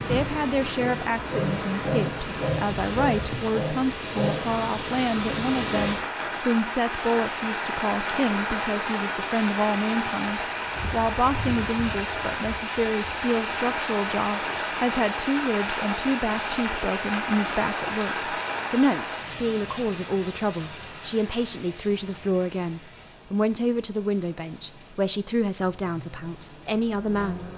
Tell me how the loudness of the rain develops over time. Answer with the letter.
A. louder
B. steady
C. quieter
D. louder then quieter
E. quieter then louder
C.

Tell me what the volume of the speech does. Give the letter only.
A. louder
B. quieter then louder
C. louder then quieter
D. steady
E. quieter
D.